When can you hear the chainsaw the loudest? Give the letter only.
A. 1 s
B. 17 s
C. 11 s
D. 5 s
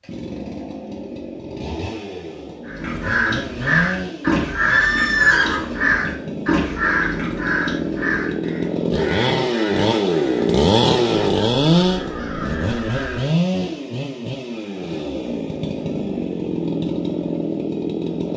C.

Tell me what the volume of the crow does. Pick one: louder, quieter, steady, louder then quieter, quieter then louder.
quieter.